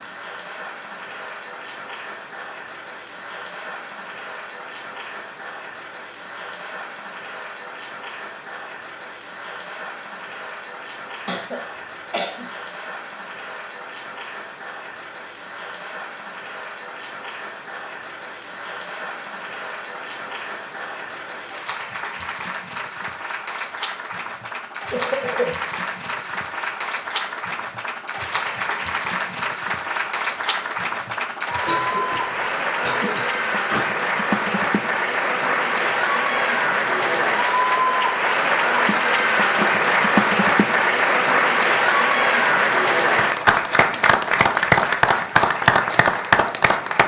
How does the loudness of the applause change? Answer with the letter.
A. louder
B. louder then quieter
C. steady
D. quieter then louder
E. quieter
A.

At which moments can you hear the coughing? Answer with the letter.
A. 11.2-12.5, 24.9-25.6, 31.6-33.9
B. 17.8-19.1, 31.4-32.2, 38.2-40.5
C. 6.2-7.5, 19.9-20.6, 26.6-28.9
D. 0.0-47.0
A.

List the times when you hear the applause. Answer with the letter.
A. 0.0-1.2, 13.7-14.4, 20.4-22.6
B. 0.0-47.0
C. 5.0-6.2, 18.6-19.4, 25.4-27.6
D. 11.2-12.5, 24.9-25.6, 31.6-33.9
B.